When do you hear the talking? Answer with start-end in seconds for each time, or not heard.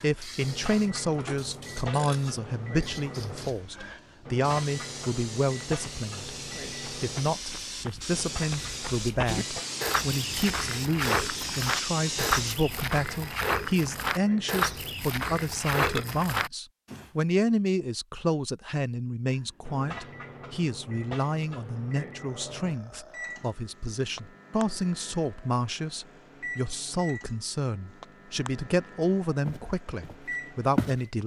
0.0-6.3, 7.0-31.2.